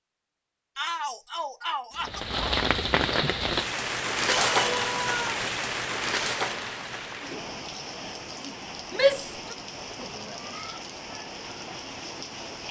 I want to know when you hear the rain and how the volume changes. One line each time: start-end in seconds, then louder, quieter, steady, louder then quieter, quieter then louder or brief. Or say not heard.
1.9-12.6 quieter.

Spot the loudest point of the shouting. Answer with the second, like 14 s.
9 s.